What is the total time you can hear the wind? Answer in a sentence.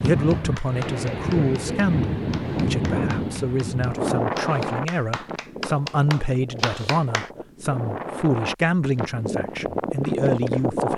You can hear the wind for 11 seconds altogether.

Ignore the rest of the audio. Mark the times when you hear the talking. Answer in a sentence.
You can hear the talking from 0.0 to 10.9 s.